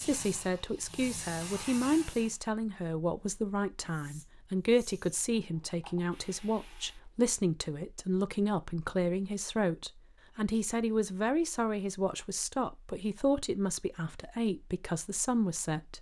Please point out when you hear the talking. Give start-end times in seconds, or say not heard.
0.0-15.9.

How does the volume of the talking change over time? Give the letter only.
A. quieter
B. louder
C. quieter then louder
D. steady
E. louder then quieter
D.